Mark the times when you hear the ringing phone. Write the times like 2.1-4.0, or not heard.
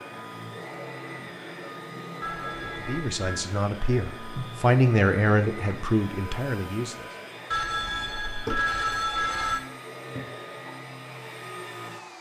2.2-3.5, 7.5-9.6.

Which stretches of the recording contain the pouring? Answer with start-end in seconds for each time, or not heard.
not heard.